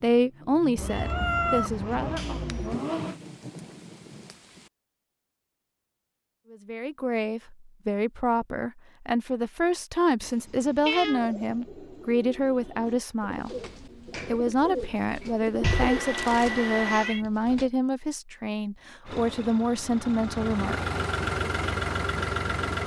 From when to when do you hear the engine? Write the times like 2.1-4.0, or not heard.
0.0-3.2, 19.1-22.8.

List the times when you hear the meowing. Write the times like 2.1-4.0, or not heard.
0.8-2.8, 10.2-11.4, 15.6-17.2.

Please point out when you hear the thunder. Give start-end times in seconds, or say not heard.
2.7-4.7.